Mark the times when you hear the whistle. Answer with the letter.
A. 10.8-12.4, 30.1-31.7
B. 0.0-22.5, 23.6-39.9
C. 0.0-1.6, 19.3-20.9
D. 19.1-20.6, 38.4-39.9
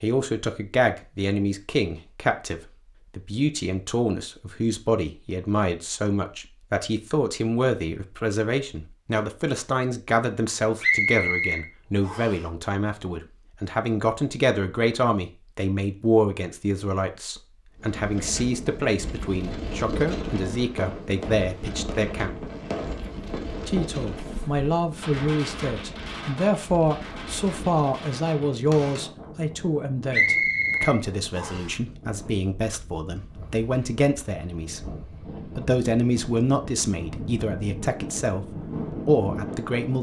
A.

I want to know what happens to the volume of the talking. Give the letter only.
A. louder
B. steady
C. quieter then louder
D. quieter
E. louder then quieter
B.